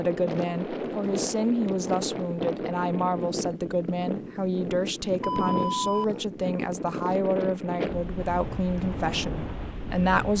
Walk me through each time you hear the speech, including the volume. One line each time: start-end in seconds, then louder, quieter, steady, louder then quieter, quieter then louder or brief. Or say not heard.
0.0-10.3 steady.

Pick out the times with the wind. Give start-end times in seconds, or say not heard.
0.0-10.3.